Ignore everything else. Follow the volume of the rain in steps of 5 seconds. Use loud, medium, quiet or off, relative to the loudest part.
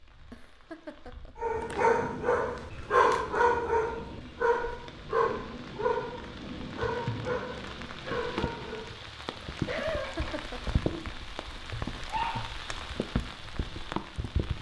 quiet, loud, loud.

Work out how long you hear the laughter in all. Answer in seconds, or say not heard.
2 s.